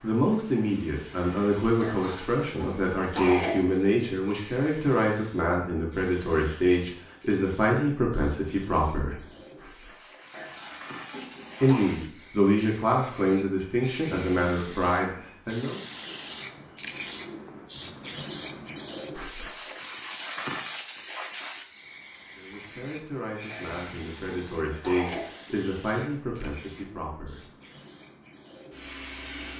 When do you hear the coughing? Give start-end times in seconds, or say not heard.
1.8-3.6, 10.3-11.9, 23.4-25.4.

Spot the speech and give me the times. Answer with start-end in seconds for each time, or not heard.
0.0-9.2, 11.6-15.8, 22.4-27.4.